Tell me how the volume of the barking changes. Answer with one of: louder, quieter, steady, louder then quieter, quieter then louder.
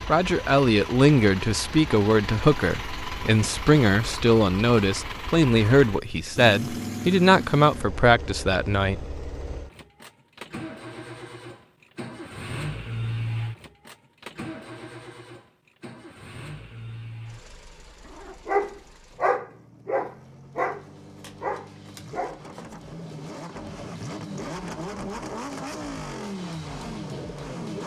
quieter.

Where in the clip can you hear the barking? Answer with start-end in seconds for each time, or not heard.
18.1-22.7.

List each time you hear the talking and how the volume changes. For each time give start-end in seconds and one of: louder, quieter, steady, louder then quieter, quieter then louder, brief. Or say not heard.
0.1-9.2 steady.